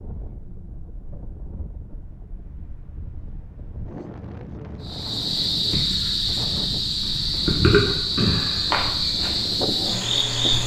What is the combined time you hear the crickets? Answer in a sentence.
You can hear the crickets for 6 seconds altogether.